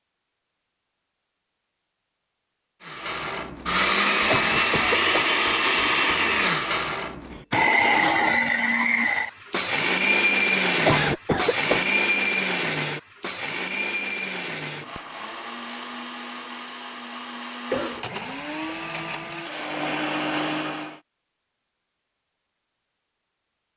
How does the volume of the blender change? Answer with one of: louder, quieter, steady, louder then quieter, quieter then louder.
quieter.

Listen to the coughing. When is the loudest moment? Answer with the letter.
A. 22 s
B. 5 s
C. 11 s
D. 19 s
C.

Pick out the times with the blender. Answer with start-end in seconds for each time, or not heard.
2.8-21.0.